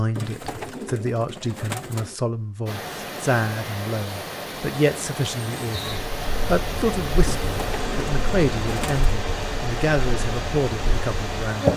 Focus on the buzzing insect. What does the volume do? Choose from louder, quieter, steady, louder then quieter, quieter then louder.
steady.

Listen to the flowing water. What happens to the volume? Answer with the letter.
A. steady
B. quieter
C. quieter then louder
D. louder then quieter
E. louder
A.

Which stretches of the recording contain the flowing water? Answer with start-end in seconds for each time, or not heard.
2.6-11.7.